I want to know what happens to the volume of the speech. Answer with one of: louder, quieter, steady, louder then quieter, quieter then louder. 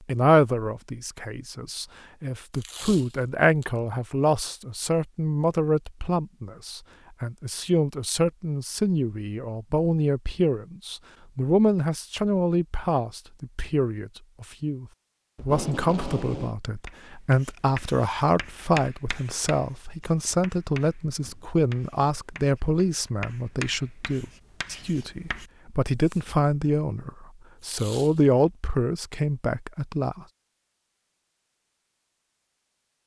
steady.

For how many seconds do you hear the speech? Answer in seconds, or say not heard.
30 s.